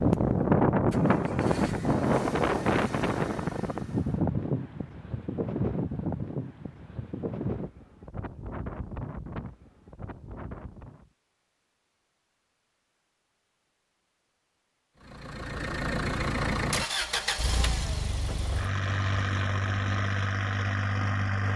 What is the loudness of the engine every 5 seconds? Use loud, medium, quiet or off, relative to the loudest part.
quiet, off, off, loud, loud.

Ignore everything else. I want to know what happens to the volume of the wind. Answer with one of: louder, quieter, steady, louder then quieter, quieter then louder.
quieter.